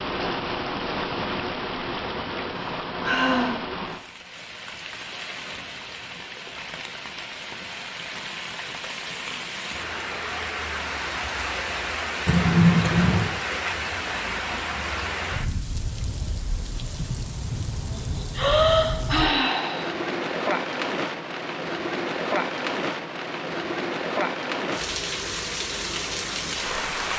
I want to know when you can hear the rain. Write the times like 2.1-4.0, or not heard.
0.0-27.1.